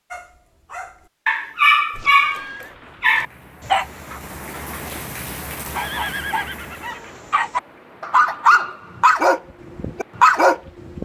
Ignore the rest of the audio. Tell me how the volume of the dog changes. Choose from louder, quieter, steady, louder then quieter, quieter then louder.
quieter then louder.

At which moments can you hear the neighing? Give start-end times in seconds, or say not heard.
1.9-2.8, 5.7-7.2.